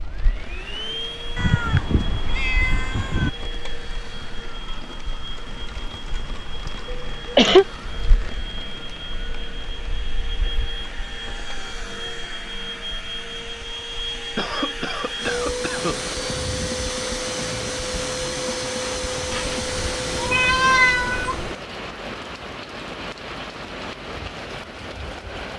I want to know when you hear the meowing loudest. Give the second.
21 s.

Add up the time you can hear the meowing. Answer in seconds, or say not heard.
4 s.